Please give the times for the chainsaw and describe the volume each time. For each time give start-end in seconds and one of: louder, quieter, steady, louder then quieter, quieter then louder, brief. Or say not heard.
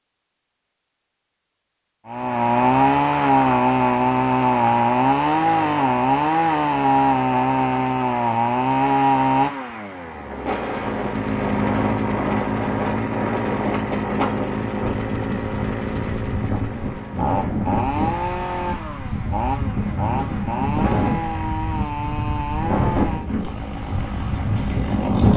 2.0-25.3 quieter.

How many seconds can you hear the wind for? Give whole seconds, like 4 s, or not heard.
15 s.